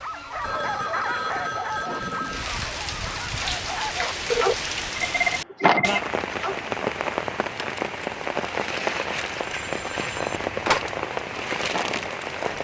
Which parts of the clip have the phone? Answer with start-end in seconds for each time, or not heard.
0.4-2.5, 4.3-6.0, 9.6-10.9.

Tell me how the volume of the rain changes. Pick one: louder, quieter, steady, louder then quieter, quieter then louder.
louder.